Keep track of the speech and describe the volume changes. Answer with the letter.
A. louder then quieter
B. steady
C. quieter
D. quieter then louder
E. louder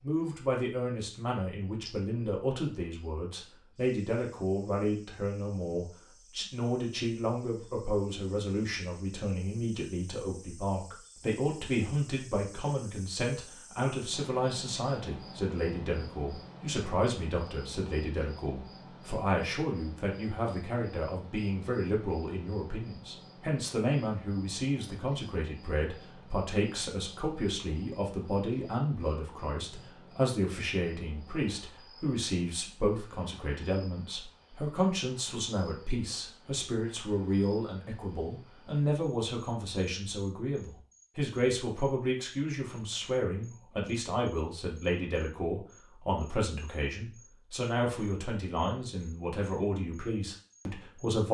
B.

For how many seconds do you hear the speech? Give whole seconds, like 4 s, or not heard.
51 s.